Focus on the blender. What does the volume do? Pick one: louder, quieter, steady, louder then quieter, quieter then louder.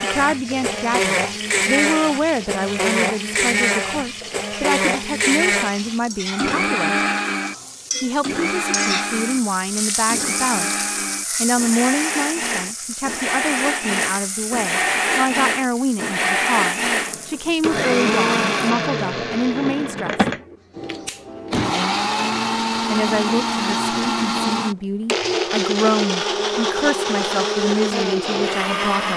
steady.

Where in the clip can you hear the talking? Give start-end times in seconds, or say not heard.
0.0-7.0, 8.0-20.2, 22.9-29.1.